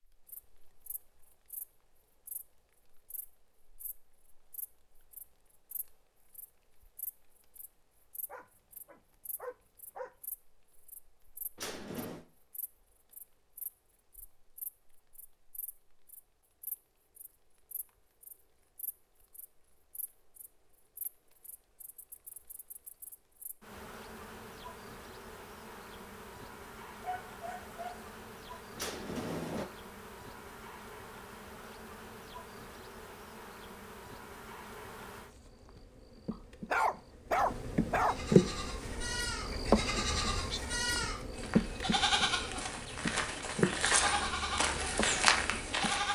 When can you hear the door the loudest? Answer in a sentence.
The loudest moment of the door is at 29 seconds.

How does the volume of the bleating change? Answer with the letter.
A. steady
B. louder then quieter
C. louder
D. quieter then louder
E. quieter
C.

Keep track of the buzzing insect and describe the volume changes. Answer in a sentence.
The loudness of the buzzing insect goes up.